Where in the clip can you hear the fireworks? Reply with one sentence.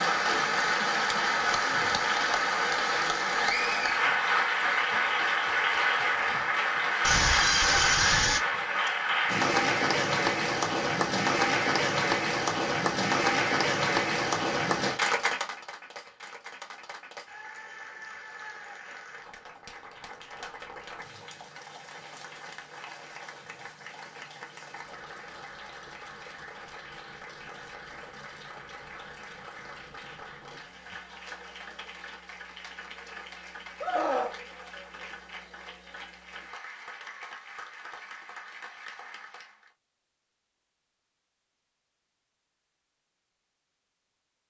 The fireworks can't be heard in this clip.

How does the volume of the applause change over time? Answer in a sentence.
The loudness of the applause goes down.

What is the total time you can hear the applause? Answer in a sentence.
You can hear the applause for 40 seconds altogether.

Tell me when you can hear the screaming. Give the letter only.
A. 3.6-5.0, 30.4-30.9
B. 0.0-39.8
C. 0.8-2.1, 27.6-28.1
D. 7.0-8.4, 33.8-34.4
D.